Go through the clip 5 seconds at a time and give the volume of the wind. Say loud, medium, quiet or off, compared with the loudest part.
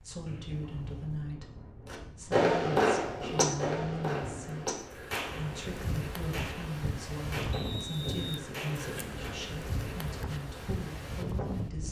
medium, loud, loud.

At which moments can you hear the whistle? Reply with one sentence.
You can hear the whistle from 0.2 to 1.3 s and from 7.5 to 8.2 s.